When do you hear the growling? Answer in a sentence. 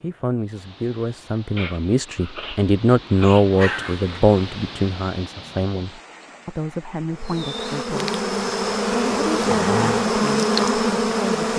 The growling can be heard from 3.5 to 4.2 s and from 9.3 to 10.1 s.